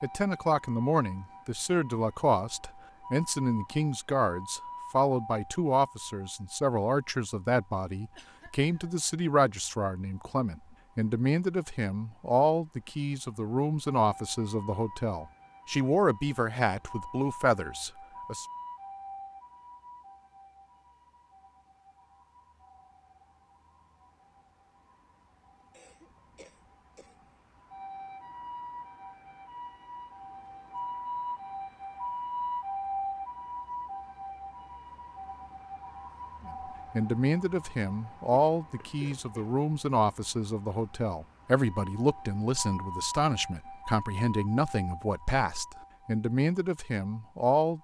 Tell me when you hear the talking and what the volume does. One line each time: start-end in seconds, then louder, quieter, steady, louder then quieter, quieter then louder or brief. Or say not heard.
0.0-18.4 steady
36.5-47.7 steady.